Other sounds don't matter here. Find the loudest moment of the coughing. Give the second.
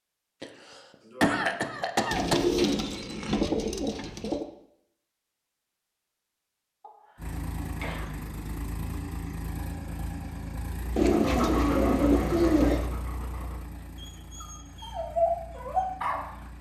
1 s.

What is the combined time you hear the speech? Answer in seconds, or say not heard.
not heard.